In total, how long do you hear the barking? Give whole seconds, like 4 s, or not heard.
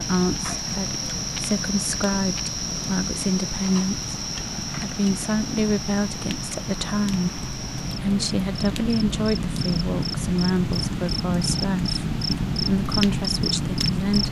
not heard.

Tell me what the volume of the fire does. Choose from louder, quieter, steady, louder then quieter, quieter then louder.
louder.